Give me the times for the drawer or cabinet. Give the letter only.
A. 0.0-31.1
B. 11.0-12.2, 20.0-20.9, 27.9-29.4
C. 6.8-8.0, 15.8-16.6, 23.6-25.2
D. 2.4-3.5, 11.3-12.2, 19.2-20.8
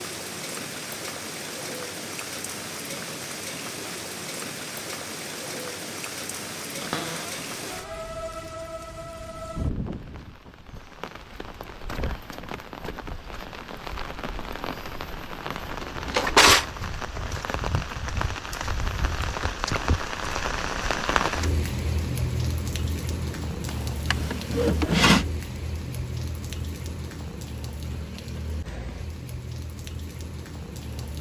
C.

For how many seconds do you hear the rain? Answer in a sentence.
The rain can be heard for 31 seconds in total.